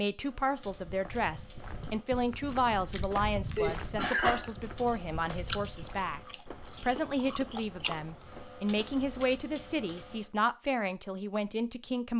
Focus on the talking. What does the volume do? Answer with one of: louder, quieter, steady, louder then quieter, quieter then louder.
steady.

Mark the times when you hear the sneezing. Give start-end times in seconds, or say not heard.
3.5-4.5.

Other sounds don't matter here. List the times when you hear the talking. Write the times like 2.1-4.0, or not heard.
0.0-6.2, 6.8-12.1.